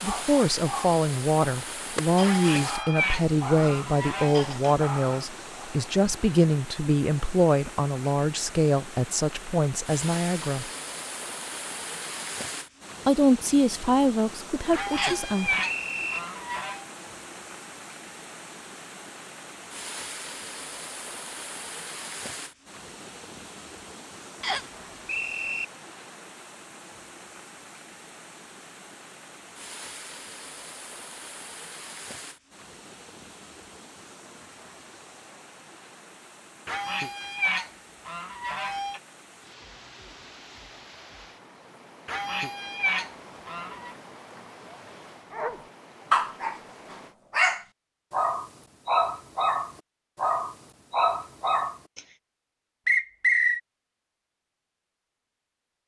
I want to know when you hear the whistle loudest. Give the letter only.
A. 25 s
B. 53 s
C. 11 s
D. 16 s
B.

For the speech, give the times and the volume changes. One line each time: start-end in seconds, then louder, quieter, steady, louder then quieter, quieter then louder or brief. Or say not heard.
0.0-10.7 steady
13.1-15.6 brief.